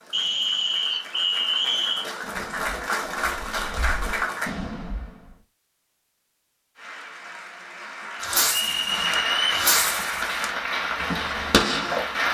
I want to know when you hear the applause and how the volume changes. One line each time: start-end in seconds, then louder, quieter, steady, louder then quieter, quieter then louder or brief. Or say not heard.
0.0-4.5 louder
6.8-12.2 louder.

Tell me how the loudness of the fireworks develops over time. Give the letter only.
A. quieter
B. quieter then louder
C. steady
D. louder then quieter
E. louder
E.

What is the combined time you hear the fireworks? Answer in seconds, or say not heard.
7 s.